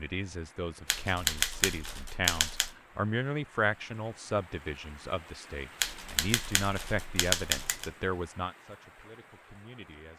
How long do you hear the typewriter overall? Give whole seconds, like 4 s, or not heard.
4 s.